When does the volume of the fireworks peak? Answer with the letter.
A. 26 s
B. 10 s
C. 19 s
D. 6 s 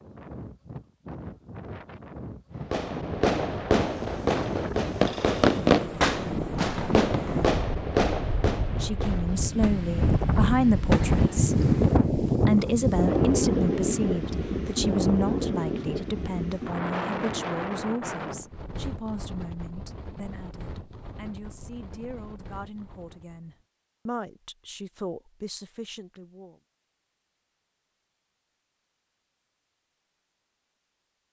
D.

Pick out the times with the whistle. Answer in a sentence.
The whistle can't be heard in this clip.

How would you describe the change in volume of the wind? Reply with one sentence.
The volume of the wind goes up, then down.